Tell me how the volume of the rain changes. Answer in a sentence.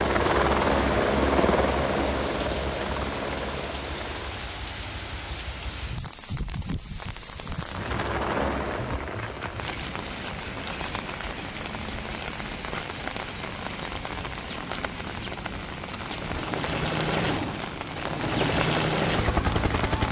The loudness of the rain stays about the same.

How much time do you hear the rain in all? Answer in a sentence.
The rain can be heard for 20 seconds in total.